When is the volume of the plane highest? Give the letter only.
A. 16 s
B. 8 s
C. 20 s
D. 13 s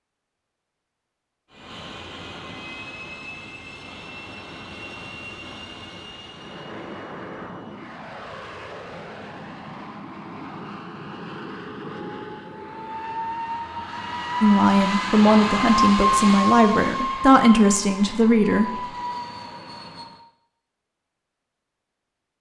A.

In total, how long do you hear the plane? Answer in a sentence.
You can hear the plane for 19 seconds altogether.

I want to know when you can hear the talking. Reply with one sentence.
You can hear the talking from 14.4 to 18.8 s.